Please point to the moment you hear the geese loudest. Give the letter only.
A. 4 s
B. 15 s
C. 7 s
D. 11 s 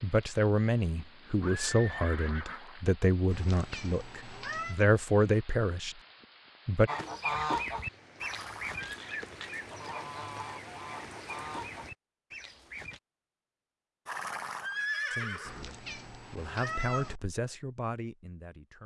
C.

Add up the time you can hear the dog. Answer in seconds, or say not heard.
not heard.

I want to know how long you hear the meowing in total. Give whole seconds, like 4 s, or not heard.
3 s.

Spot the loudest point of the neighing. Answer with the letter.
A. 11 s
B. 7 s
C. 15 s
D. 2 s
C.